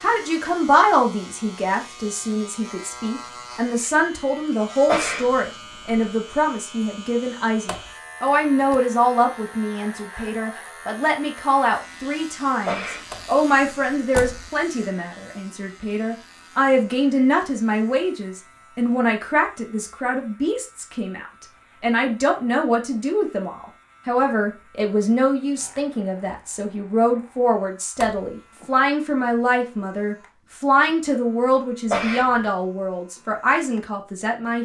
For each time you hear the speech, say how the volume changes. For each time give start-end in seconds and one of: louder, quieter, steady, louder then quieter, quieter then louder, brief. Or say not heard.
0.0-34.6 steady.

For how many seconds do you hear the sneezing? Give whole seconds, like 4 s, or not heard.
3 s.